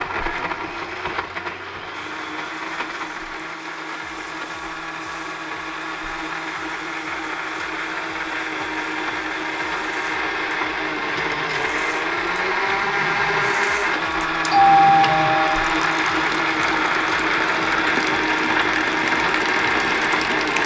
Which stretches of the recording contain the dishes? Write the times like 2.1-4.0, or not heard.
not heard.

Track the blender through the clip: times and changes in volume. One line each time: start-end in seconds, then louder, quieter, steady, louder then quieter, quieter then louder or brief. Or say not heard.
0.0-20.6 louder.